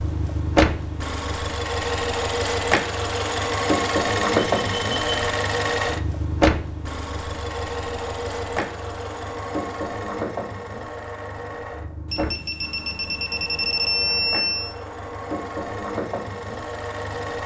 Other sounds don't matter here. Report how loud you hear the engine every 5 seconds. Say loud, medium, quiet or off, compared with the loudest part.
loud, loud, medium, medium.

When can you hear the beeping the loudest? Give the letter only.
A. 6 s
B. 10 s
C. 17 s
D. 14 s
D.